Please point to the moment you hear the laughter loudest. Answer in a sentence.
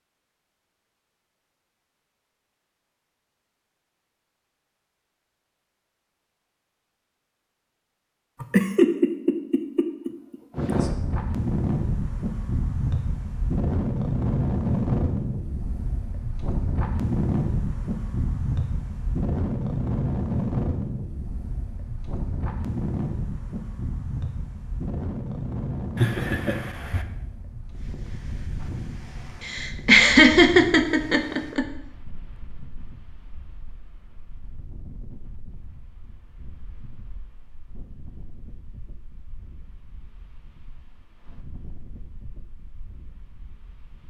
The loudest moment of the laughter is at 30 seconds.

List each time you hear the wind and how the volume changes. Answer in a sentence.
You can hear the wind from 10.5 to 44.0 s, getting quieter.